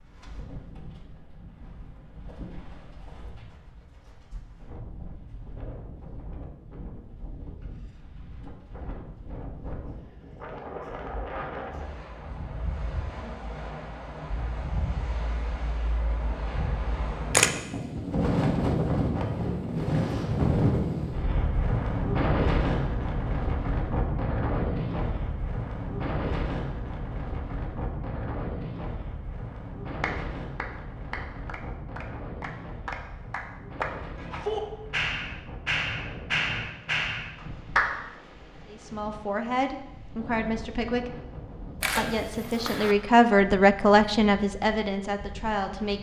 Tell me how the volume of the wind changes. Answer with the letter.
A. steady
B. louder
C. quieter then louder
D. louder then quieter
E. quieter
D.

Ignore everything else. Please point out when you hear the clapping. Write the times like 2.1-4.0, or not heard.
30.0-37.9.